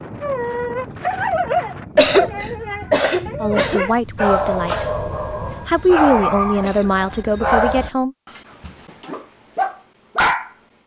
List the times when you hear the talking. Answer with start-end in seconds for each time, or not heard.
3.4-4.8, 5.7-8.1.